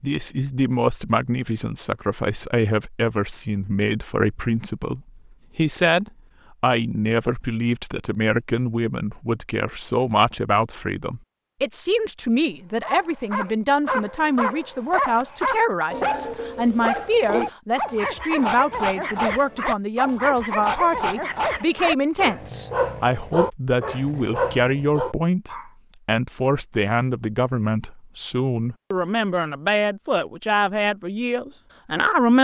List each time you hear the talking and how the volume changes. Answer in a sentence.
You can hear the talking from 0.0 to 32.3 s, at a steady volume.